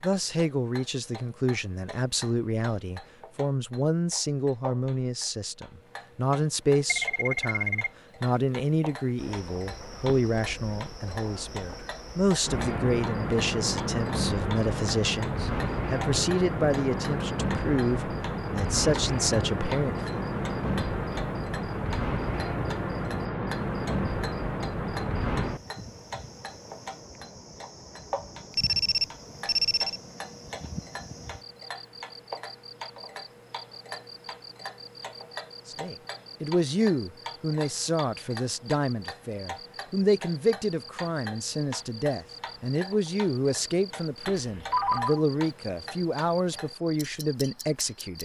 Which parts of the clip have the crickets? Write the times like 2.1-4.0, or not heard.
9.2-48.1.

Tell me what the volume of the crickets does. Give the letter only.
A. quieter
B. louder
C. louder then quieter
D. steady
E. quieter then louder
A.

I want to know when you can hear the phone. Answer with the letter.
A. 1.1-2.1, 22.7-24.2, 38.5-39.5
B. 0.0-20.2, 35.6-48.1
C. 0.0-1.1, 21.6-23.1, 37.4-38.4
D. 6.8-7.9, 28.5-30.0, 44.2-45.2
D.